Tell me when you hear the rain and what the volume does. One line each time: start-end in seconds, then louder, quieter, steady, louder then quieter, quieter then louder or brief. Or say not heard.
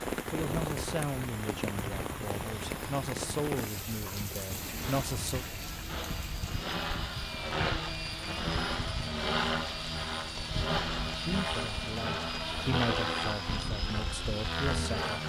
0.0-15.2 quieter.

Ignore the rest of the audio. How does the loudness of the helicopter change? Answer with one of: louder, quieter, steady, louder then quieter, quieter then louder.
louder.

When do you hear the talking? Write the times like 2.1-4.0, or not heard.
0.3-5.5, 11.2-15.2.